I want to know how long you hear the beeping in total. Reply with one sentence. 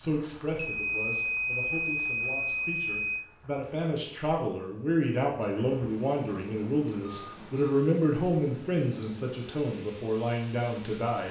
The beeping can be heard for 5 seconds in total.